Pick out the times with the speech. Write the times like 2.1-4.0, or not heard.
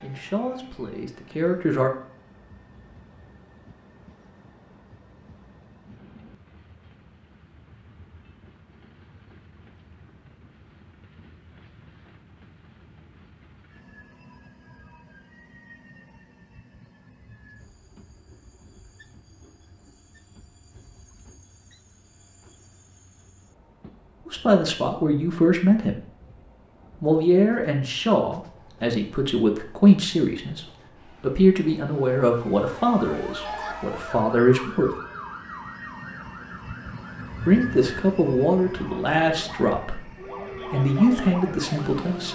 0.0-1.9, 24.2-26.0, 27.0-34.9, 37.5-42.3.